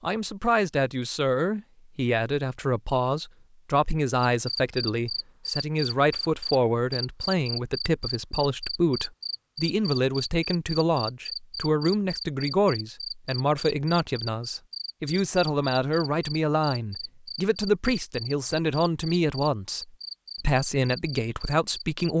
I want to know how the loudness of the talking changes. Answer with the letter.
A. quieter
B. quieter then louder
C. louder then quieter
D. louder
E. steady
E.